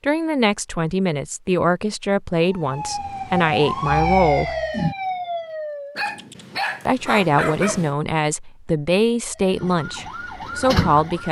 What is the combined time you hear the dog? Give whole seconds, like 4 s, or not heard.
2 s.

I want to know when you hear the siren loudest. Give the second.
4 s.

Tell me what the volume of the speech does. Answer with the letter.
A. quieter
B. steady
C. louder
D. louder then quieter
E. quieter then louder
B.